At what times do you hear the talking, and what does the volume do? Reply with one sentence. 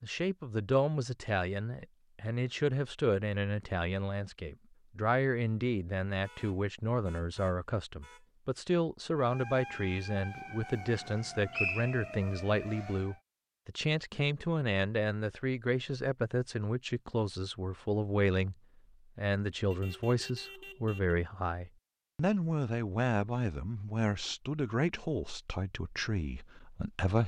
The talking can be heard from 0.0 to 18.6 s, at a steady volume; and from 19.1 to 27.2 s, getting quieter.